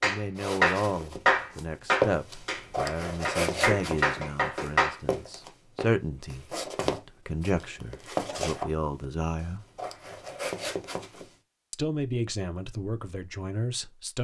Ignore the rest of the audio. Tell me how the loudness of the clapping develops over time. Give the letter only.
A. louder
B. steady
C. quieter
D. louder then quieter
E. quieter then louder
E.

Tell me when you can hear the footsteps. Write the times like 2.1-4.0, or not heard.
0.3-11.3.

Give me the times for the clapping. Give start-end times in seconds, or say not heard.
0.0-5.0.